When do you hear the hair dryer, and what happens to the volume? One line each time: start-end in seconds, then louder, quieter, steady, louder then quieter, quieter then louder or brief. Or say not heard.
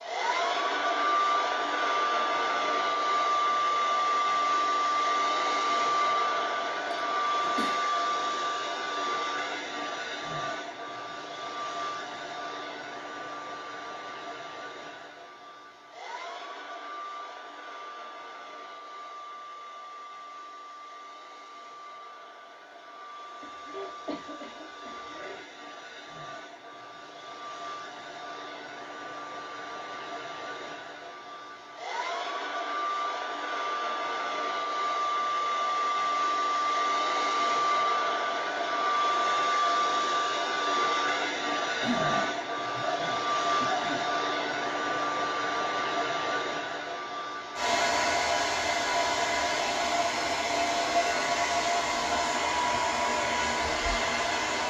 0.0-54.6 quieter then louder.